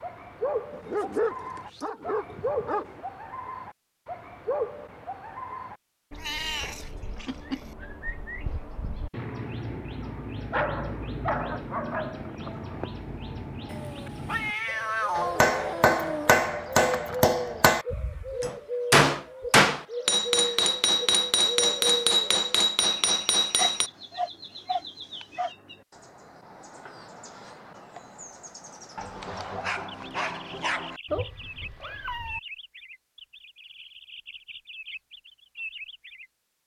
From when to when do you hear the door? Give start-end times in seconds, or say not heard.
not heard.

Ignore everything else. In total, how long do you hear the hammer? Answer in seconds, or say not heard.
9 s.